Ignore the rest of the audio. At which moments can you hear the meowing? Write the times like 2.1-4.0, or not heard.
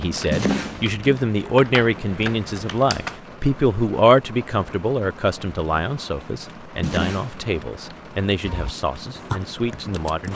0.3-1.0, 6.8-7.5.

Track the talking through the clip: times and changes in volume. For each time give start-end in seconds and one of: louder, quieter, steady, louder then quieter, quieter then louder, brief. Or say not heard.
0.0-10.3 quieter.